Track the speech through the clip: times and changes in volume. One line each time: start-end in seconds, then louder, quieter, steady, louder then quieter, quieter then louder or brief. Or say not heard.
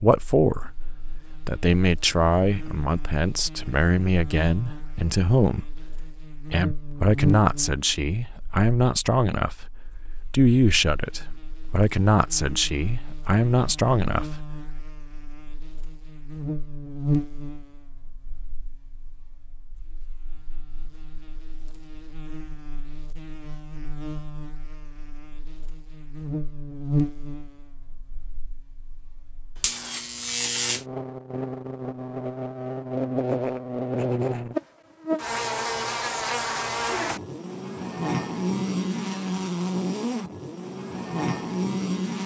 0.0-0.7 brief
1.4-14.5 steady.